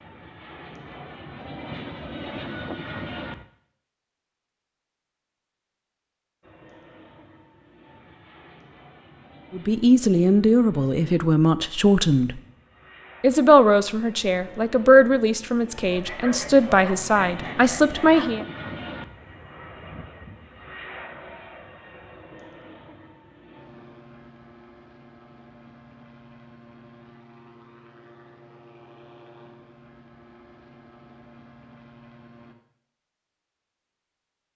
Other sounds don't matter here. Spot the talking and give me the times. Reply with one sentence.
You can hear the talking from 9.5 to 12.3 s and from 13.2 to 18.4 s.